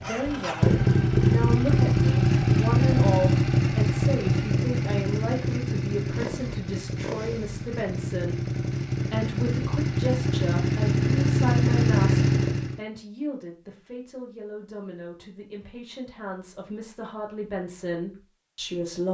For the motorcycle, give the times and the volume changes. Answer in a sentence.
You can hear the motorcycle from 0.0 to 12.8 s, getting quieter then louder.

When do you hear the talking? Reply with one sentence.
You can hear the talking from 0.0 to 19.0 s.